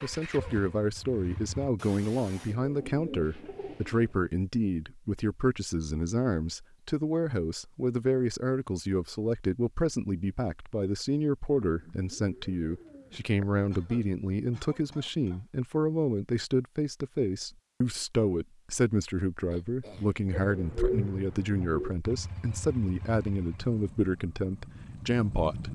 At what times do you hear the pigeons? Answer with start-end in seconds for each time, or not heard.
2.5-4.2, 11.6-13.5, 20.3-21.9.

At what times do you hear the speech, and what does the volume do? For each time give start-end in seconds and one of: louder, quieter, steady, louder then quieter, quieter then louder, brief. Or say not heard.
0.0-25.6 steady.